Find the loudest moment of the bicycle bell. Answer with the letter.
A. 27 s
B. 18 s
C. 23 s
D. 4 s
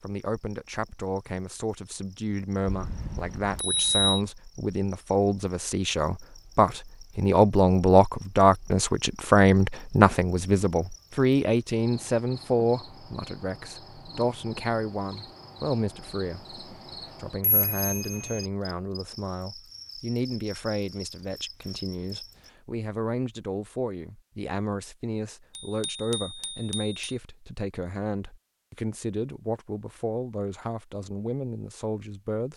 D.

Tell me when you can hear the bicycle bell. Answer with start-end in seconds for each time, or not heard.
2.6-4.2, 17.4-18.4, 25.6-27.1.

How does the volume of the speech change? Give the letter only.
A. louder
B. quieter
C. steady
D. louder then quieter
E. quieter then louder
D.